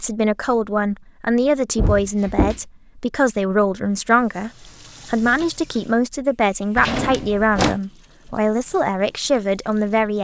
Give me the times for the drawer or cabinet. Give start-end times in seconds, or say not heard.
1.8-2.6, 6.8-7.8.